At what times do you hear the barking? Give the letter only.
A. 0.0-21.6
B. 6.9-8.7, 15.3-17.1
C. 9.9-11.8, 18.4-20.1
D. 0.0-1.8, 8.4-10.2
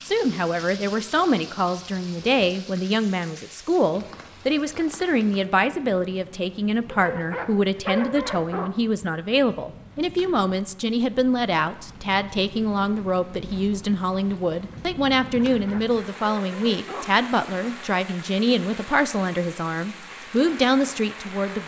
B.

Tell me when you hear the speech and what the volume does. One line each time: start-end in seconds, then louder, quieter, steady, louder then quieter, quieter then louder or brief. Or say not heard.
0.0-21.6 steady.